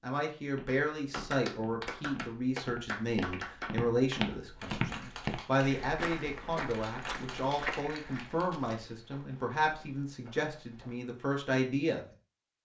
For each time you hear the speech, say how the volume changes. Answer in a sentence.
The speech can be heard from 0.0 to 12.1 s, at a steady volume.